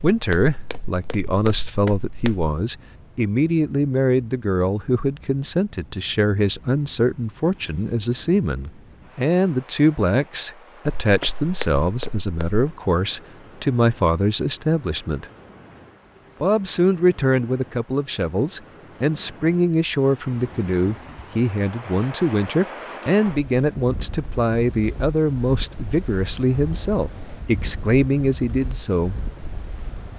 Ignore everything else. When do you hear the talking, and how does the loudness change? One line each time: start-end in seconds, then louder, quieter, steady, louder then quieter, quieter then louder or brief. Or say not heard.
0.0-15.2 steady
16.4-29.1 steady.